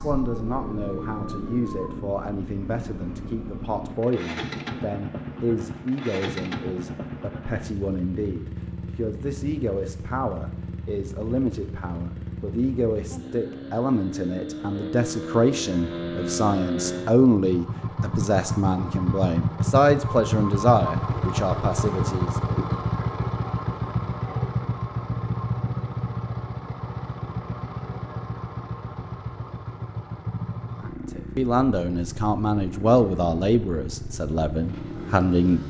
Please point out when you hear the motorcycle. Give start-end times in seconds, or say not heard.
0.0-35.6.